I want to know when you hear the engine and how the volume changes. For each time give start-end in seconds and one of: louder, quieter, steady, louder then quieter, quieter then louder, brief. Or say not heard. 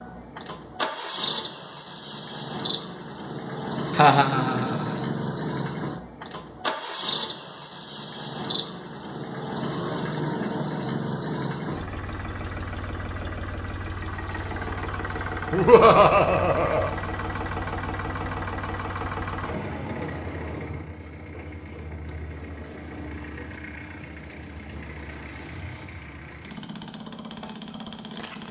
0.0-28.4 quieter.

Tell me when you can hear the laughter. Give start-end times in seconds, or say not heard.
3.9-5.0, 15.5-16.9.